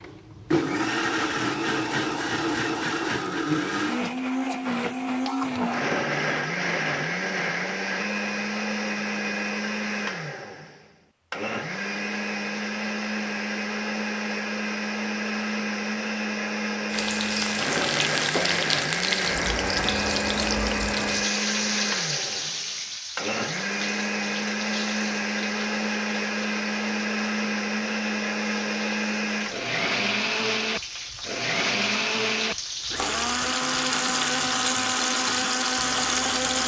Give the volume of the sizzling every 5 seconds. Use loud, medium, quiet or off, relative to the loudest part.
off, off, off, loud, loud, quiet, loud, loud.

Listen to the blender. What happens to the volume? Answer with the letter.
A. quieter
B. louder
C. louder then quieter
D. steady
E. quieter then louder
D.